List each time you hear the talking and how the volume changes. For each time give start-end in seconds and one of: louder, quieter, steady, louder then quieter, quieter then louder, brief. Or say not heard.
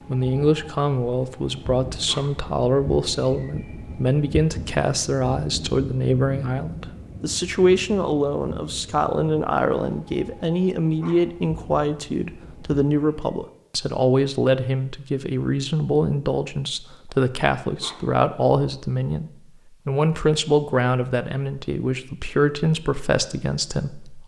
0.1-24.2 steady.